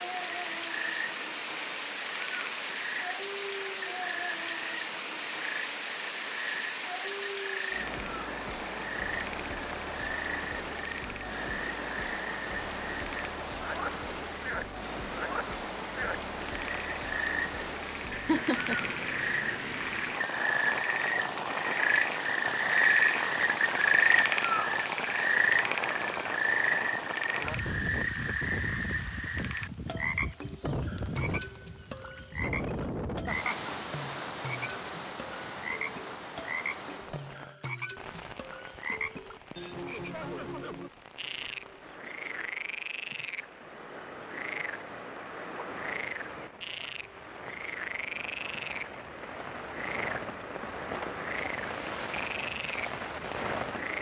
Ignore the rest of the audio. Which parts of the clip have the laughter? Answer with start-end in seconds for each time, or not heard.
18.1-18.8, 33.2-33.8.